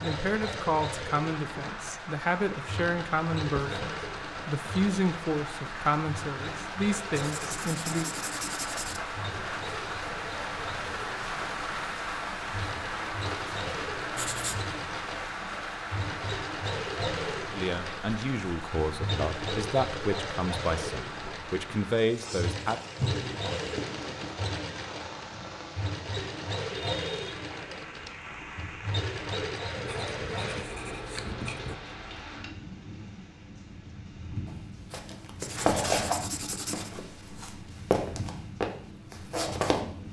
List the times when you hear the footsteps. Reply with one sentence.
You can hear the footsteps from 34.5 to 39.9 s.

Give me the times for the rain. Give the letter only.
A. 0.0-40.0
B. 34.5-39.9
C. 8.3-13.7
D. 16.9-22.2
A.